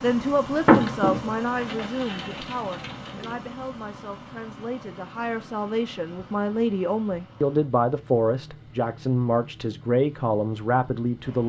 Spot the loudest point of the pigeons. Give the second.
1 s.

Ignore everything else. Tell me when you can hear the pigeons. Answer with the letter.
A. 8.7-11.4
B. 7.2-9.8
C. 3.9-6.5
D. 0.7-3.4
D.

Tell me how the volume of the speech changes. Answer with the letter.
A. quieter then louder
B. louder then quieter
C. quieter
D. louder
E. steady
A.